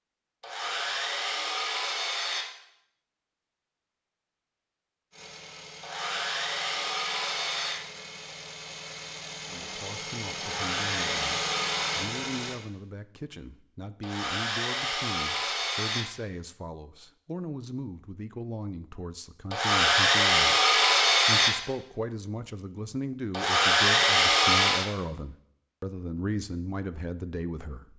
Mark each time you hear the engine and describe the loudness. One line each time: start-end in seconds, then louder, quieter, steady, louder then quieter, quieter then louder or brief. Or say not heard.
5.1-12.6 louder.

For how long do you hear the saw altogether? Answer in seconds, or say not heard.
11 s.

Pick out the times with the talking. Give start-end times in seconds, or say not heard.
9.4-27.9.